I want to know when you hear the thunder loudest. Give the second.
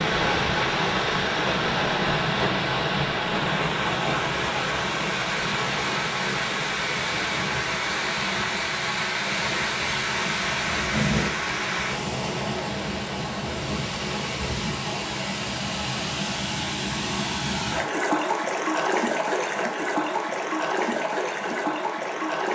11 s.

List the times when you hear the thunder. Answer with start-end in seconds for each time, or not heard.
9.3-11.3.